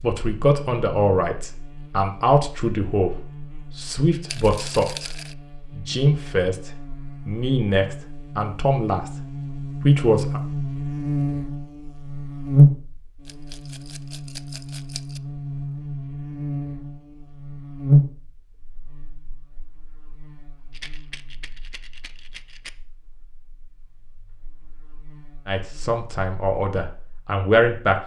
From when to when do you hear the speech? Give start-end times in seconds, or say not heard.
0.0-5.2, 5.8-9.2, 9.8-10.4, 25.4-27.9.